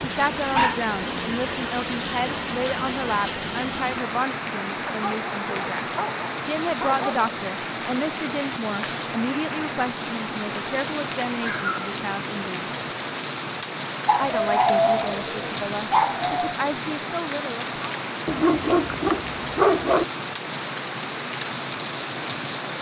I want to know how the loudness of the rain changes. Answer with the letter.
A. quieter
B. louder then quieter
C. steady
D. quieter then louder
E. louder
C.